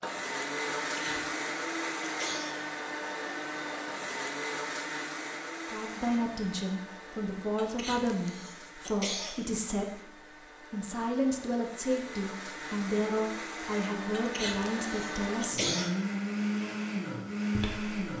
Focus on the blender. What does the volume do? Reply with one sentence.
The loudness of the blender goes down, then up.